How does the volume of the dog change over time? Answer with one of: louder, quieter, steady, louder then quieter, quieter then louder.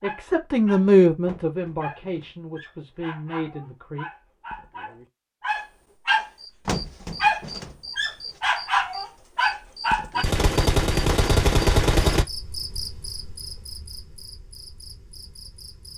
louder.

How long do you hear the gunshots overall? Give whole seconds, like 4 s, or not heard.
2 s.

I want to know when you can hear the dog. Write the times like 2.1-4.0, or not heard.
0.0-10.2.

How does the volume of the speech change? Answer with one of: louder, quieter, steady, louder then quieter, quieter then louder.
quieter then louder.